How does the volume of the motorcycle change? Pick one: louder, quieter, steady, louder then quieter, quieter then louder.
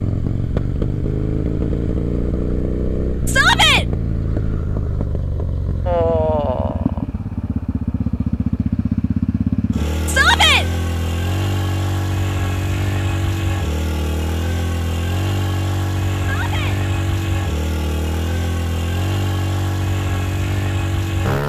steady.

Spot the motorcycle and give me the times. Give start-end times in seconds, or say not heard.
0.0-21.4.